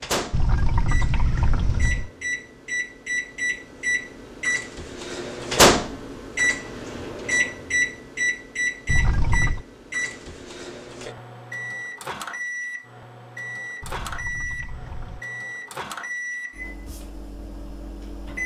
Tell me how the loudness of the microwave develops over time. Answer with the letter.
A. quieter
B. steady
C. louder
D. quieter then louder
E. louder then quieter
E.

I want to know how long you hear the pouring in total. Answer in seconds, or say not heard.
4 s.